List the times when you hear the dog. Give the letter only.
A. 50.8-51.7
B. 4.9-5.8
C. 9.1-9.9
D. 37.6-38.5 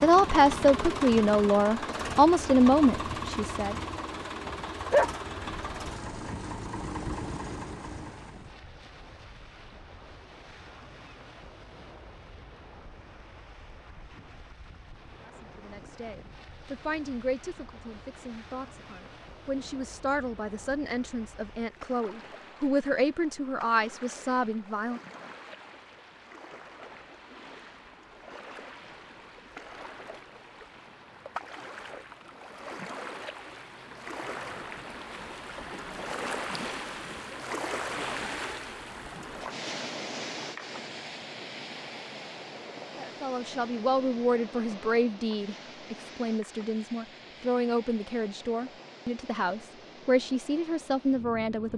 B.